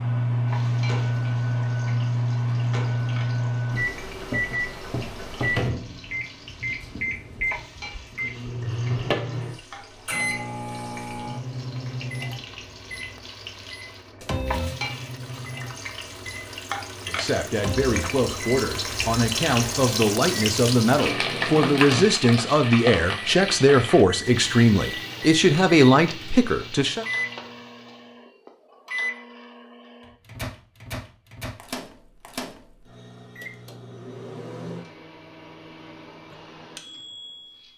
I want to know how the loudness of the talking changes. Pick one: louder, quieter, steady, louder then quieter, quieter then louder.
louder.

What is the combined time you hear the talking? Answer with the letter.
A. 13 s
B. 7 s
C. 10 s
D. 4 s
C.